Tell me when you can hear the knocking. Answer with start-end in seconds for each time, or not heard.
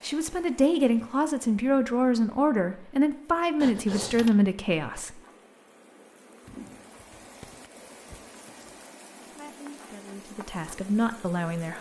not heard.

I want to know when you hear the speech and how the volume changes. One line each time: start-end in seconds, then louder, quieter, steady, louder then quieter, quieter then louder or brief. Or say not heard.
0.0-5.2 steady
9.2-11.7 brief.